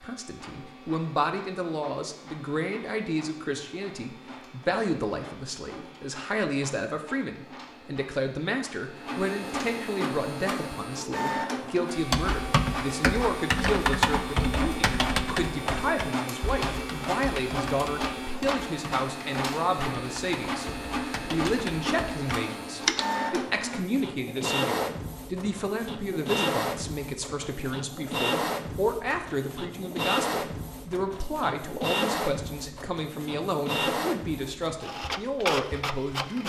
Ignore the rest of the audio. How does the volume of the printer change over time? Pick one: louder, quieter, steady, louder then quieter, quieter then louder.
louder.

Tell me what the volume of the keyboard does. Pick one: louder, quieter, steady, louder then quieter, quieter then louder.
quieter then louder.